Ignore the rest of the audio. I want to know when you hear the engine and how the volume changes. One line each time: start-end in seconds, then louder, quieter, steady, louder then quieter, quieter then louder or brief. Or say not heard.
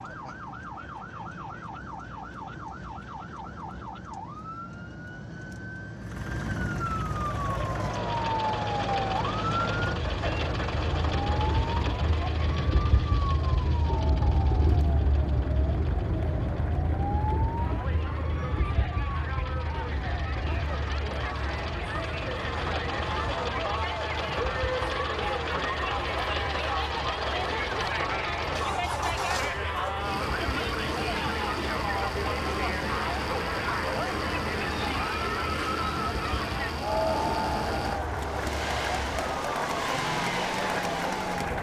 6.0-41.5 quieter then louder.